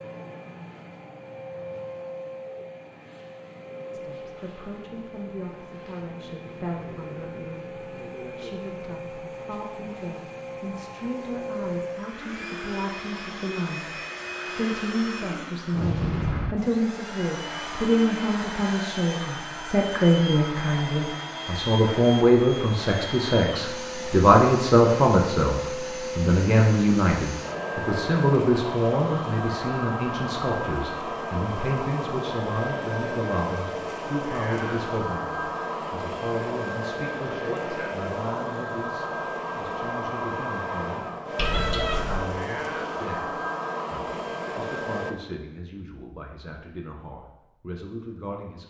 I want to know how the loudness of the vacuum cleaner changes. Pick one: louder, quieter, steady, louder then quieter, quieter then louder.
louder.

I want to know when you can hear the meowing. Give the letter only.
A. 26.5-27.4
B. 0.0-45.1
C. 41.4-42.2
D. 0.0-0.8
C.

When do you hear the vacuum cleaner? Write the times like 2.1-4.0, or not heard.
0.0-45.1.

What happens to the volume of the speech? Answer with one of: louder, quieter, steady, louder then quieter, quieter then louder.
louder then quieter.